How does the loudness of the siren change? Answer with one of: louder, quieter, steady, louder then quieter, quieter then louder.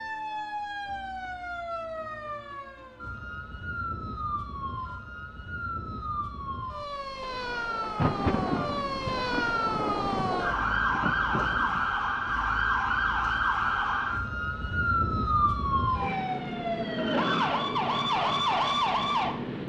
louder.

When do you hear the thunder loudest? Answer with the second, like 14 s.
8 s.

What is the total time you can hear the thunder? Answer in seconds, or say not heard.
4 s.